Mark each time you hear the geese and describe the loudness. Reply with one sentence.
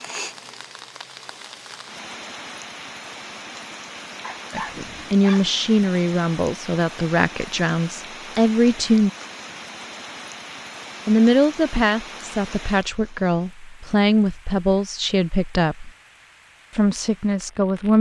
You can't hear the geese here.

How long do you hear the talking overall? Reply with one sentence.
The talking can be heard for 11 seconds in total.